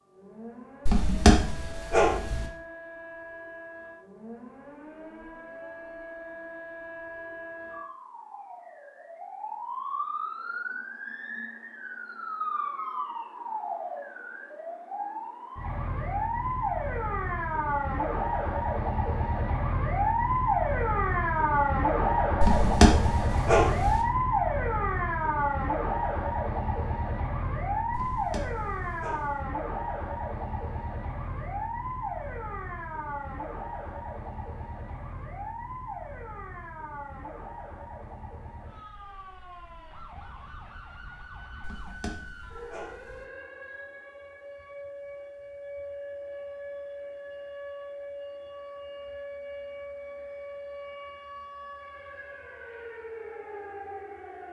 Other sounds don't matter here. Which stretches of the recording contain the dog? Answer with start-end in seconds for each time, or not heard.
0.8-2.5, 22.4-24.1, 27.9-29.4, 41.6-43.2.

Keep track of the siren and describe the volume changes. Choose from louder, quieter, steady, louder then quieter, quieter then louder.
louder then quieter.